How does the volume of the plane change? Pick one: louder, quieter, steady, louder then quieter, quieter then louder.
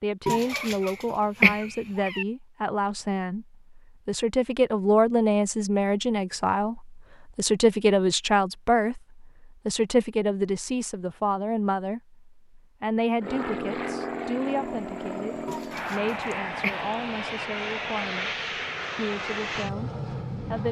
steady.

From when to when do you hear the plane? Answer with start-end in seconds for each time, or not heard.
13.2-20.6.